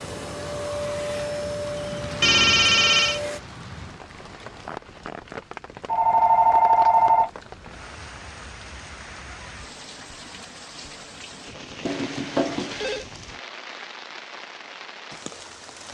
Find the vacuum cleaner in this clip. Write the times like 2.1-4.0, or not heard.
0.0-3.4.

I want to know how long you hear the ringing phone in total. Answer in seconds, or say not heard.
4 s.